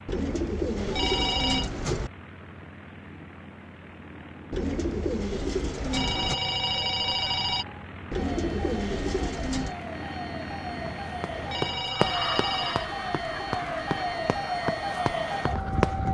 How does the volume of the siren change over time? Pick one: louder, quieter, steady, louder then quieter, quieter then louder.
louder.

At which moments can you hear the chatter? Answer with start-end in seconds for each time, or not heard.
not heard.